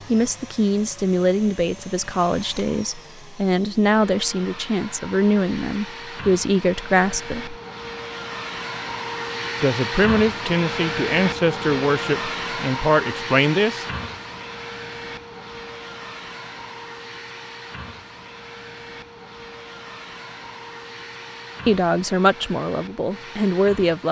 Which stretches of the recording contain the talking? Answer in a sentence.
You can hear the talking from 0.1 to 7.5 s, from 9.6 to 13.8 s and from 21.6 to 24.0 s.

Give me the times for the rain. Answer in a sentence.
The rain can't be heard in this clip.